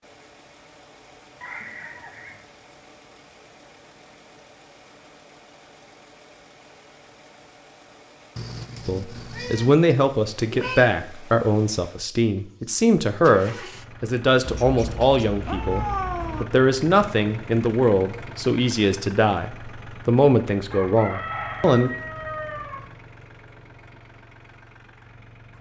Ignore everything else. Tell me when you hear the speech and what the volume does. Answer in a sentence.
You can hear the speech from 8.8 to 21.9 s, at a steady volume.